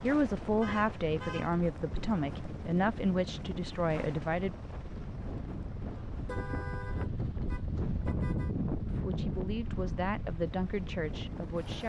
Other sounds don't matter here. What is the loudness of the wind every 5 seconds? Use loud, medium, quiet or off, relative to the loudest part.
medium, loud, medium.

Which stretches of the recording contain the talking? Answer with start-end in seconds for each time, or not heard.
0.0-4.5, 8.8-11.8.